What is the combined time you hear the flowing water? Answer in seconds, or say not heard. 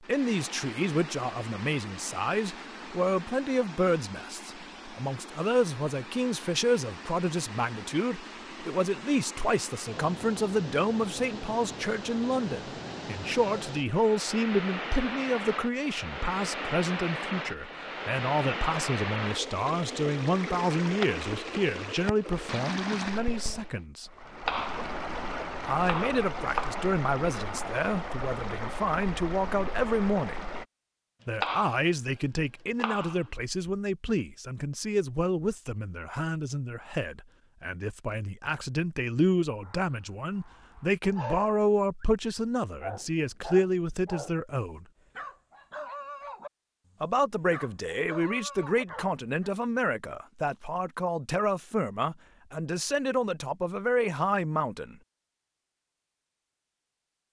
31 s.